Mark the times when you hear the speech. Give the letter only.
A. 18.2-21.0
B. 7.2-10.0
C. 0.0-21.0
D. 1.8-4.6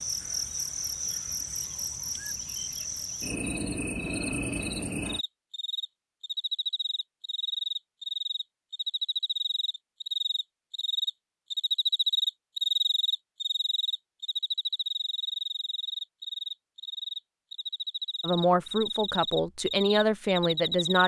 A.